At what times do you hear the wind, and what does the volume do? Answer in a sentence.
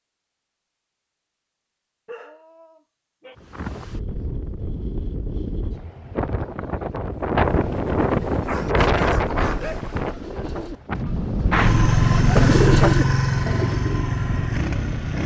You can hear the wind from 3.4 to 15.2 s, getting louder then quieter.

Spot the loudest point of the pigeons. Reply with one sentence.
The loudest moment of the pigeons is at 13 seconds.